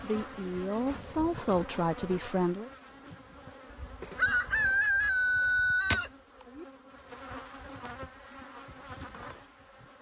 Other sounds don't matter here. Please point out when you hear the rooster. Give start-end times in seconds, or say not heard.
3.7-6.7.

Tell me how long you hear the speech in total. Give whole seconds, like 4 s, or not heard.
3 s.